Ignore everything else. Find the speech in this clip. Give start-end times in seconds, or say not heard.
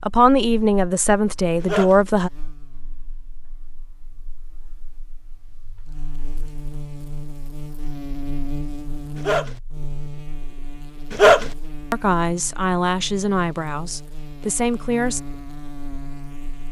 0.0-2.3, 11.9-15.2.